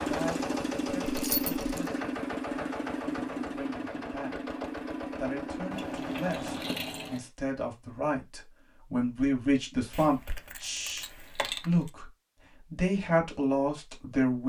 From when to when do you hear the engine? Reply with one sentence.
You can hear the engine from 0.0 to 6.8 s.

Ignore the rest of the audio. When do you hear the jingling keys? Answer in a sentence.
The jingling keys can be heard from 1.1 to 1.9 s, from 5.7 to 7.2 s and from 9.9 to 11.9 s.